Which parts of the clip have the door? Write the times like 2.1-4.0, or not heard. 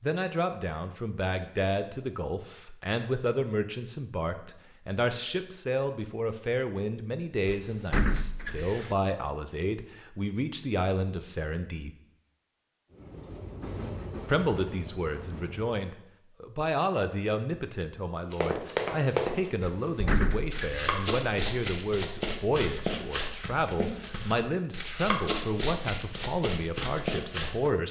7.5-8.9, 19.6-20.9.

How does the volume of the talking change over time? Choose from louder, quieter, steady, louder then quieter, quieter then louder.
steady.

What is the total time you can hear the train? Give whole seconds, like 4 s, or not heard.
3 s.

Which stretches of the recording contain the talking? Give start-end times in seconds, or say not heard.
0.0-11.9, 14.2-27.8.